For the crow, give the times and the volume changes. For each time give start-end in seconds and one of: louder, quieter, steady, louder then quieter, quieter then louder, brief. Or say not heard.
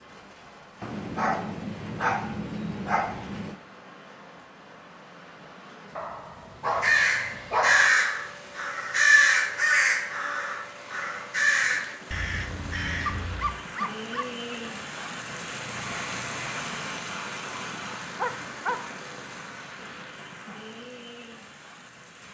6.8-13.6 quieter.